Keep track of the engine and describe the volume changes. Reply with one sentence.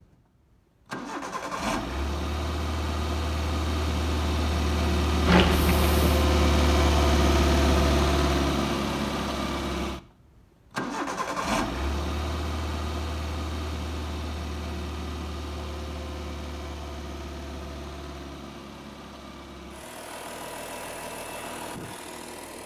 The volume of the engine goes up, then down.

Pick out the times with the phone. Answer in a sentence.
You can hear the phone from 5.2 to 6.2 s.